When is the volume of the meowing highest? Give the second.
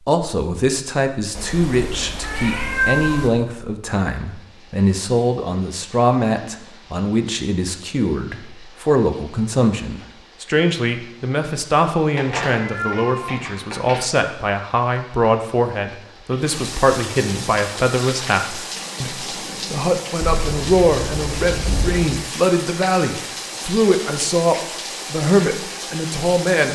3 s.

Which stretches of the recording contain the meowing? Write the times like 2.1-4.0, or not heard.
1.4-3.3, 12.2-14.0, 20.2-22.1.